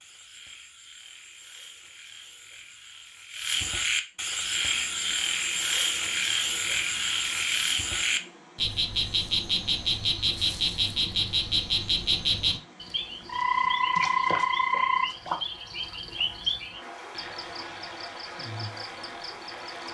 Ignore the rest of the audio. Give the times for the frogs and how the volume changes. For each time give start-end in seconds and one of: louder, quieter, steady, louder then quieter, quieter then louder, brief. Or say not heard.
0.0-19.9 louder then quieter.